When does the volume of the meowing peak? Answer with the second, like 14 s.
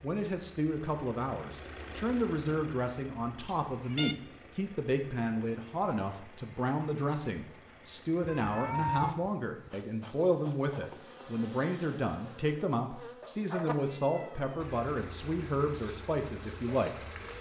9 s.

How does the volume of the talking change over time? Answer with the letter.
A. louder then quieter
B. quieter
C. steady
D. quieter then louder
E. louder
C.